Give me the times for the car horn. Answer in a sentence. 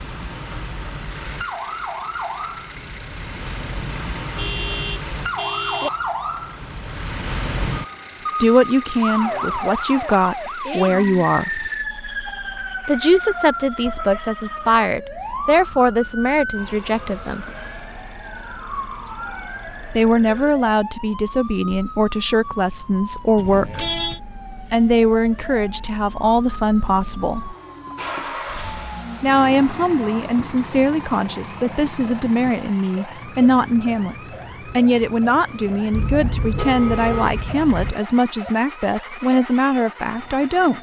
You can hear the car horn from 4.3 to 5.9 s, from 23.4 to 24.2 s and from 35.9 to 38.0 s.